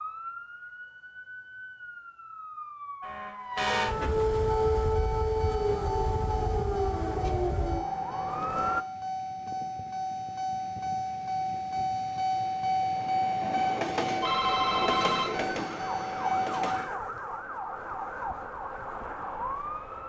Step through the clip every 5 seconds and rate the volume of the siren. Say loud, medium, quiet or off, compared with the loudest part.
loud, loud, off, medium.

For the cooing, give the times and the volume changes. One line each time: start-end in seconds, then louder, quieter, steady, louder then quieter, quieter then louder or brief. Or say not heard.
not heard.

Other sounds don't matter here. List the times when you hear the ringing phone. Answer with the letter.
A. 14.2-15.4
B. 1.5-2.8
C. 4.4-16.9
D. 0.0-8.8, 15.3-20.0
A.